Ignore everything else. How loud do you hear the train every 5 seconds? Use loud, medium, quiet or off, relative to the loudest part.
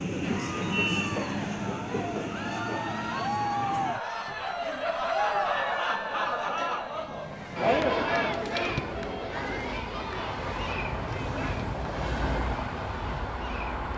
loud, medium, loud.